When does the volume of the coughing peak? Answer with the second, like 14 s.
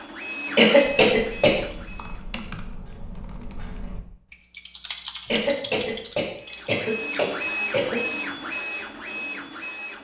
1 s.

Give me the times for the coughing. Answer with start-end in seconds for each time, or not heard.
0.6-1.6, 5.2-8.0.